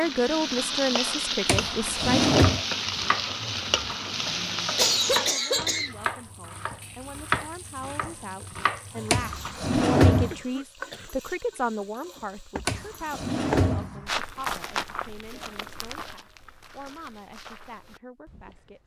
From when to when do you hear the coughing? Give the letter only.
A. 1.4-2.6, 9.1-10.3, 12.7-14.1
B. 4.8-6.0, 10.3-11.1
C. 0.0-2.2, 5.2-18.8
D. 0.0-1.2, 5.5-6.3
B.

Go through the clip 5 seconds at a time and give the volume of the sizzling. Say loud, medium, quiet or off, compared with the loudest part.
loud, quiet, quiet, off.